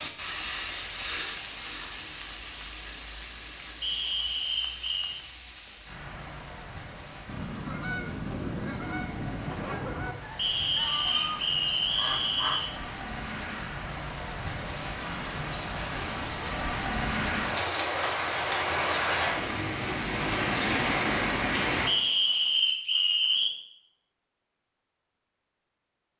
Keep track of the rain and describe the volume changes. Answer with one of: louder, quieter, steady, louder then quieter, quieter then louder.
quieter then louder.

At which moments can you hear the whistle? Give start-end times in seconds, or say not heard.
3.8-5.2, 10.3-12.8, 21.9-23.5.